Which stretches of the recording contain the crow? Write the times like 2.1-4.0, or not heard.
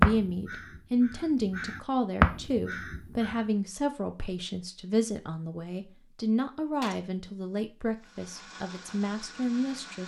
0.0-3.4.